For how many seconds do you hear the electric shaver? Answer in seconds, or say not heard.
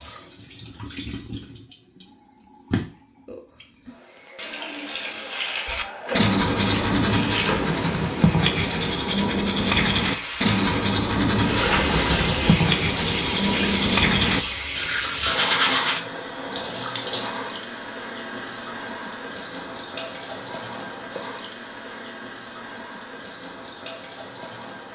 not heard.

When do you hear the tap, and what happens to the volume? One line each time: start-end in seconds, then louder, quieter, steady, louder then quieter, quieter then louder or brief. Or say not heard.
0.0-24.8 louder then quieter.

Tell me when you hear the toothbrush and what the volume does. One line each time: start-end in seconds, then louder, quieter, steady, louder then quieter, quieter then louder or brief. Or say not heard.
5.7-16.1 steady.